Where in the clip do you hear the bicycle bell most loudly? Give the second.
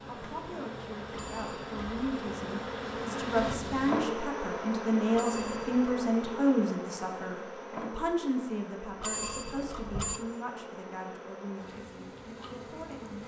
9 s.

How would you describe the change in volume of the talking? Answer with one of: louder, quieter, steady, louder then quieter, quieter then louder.
louder then quieter.